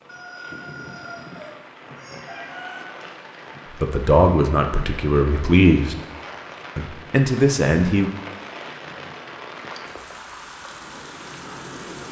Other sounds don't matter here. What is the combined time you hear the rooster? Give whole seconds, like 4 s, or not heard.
3 s.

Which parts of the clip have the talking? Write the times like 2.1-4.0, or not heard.
3.7-6.0, 6.8-8.1.